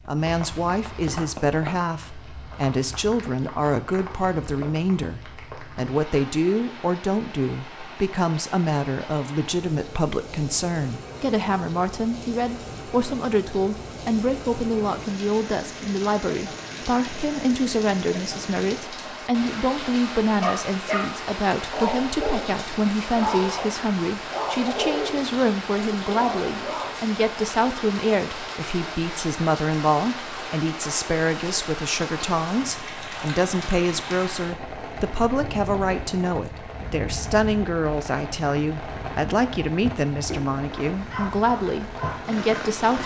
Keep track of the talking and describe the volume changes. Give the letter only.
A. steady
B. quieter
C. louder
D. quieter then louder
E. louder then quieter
A.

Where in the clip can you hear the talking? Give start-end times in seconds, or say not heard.
0.1-43.0.